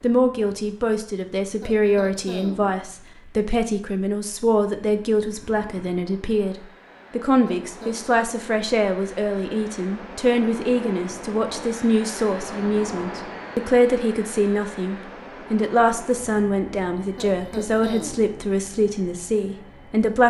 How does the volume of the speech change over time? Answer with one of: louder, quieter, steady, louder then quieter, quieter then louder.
steady.